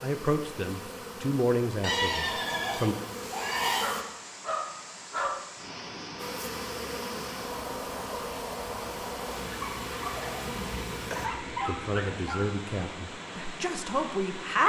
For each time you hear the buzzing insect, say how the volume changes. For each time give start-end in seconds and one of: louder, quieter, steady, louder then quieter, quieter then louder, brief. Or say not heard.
0.0-4.0 steady
6.2-11.3 steady.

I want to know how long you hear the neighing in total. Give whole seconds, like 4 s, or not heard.
4 s.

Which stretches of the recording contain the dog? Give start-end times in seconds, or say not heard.
3.8-5.4, 9.6-12.5.